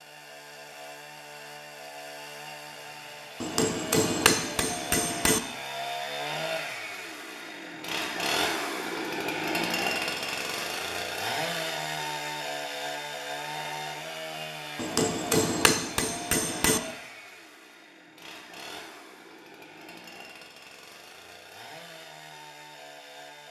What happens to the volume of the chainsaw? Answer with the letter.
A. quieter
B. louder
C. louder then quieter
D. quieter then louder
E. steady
C.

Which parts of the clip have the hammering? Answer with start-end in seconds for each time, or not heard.
3.4-5.4, 14.8-16.8.